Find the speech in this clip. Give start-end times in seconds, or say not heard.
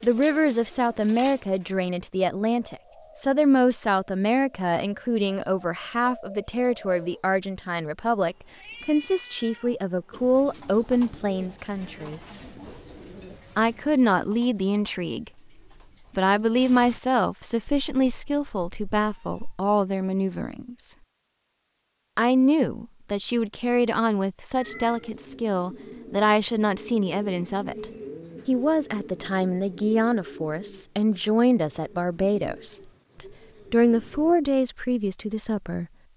0.0-12.2, 13.6-15.3, 16.1-20.9, 22.1-35.9.